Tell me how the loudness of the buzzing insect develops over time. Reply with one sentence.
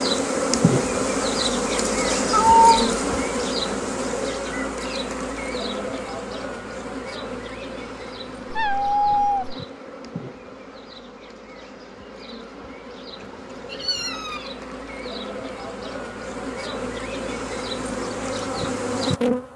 The volume of the buzzing insect goes down, then up.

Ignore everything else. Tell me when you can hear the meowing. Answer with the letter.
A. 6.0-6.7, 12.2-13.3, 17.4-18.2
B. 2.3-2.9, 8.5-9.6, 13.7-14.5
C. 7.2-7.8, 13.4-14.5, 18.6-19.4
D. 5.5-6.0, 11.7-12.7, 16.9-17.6
B.